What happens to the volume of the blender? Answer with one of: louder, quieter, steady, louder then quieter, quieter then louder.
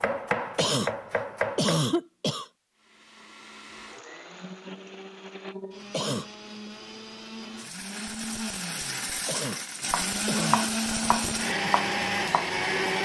louder.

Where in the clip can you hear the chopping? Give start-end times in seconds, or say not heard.
0.0-1.9, 9.8-13.0.